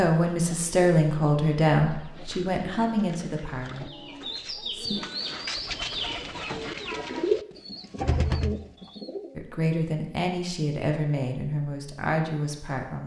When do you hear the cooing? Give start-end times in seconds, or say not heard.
0.1-9.4.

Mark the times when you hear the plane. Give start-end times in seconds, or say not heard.
not heard.